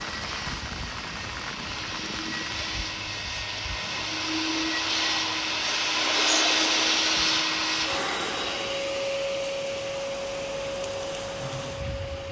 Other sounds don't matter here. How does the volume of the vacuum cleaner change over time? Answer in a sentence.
The volume of the vacuum cleaner goes up, then down.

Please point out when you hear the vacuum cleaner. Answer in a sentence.
The vacuum cleaner can be heard from 0.0 to 12.2 s.